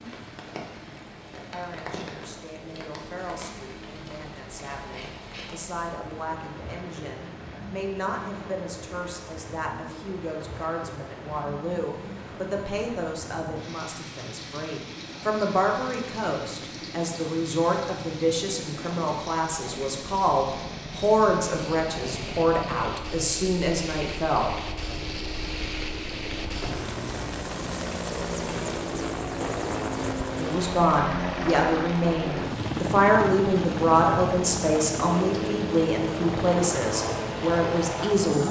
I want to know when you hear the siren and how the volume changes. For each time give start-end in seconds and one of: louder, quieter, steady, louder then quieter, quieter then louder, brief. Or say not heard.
not heard.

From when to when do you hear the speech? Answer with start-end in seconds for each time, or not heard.
1.5-24.5, 30.4-38.4.